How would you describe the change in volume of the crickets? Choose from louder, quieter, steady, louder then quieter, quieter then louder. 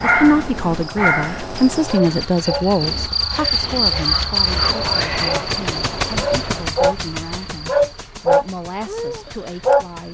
louder then quieter.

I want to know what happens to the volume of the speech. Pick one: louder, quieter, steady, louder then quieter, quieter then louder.
quieter.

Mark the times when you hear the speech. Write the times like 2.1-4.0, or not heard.
0.0-10.0.